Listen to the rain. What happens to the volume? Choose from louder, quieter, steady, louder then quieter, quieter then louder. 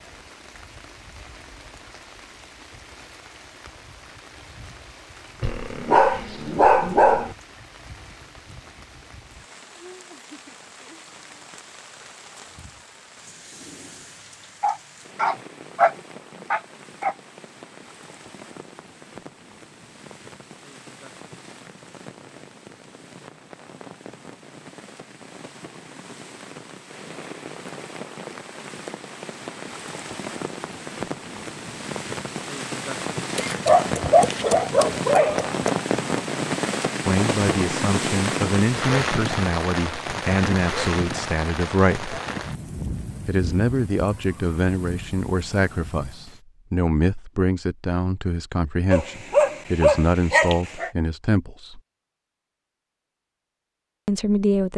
louder.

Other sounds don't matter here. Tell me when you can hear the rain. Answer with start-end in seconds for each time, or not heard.
0.0-46.4.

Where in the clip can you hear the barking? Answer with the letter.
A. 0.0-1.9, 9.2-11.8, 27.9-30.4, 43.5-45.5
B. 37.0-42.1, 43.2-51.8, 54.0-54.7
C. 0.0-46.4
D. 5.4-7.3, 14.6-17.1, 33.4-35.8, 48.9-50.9
D.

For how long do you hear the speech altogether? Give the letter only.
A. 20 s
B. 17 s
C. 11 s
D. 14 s
D.